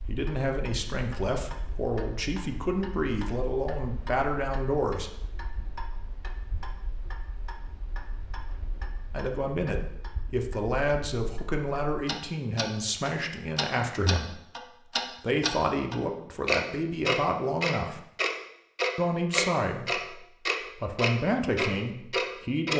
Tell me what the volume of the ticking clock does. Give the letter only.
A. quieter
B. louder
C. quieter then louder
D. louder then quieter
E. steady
B.